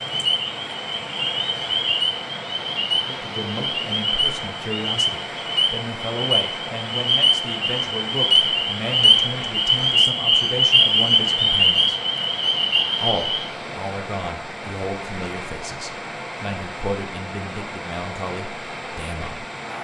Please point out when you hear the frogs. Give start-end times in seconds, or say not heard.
0.0-13.5.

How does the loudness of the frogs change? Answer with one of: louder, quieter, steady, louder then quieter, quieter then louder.
louder.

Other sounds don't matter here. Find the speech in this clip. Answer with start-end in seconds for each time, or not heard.
3.0-12.0, 13.0-19.4.